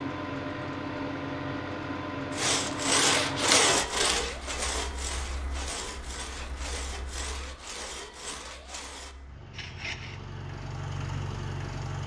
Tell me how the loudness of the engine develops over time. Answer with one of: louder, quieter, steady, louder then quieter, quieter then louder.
quieter then louder.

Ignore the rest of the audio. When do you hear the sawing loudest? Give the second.
4 s.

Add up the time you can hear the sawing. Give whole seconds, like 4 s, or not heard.
8 s.